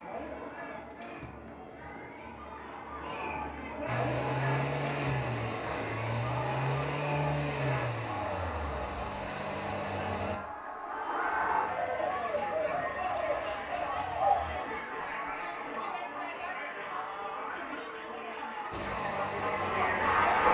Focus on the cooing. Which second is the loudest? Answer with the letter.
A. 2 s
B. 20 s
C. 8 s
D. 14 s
D.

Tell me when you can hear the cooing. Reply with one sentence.
The cooing can be heard from 11.7 to 14.6 s.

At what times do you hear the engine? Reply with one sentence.
The engine can be heard from 3.9 to 10.4 s and from 18.7 to 20.4 s.